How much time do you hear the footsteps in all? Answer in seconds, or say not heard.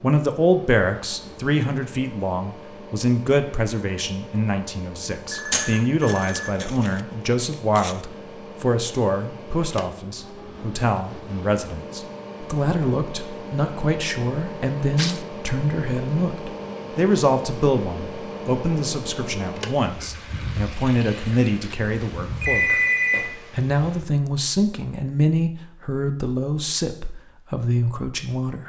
not heard.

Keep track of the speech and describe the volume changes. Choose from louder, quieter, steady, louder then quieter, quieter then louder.
steady.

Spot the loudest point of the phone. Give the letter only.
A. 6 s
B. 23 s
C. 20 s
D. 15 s
B.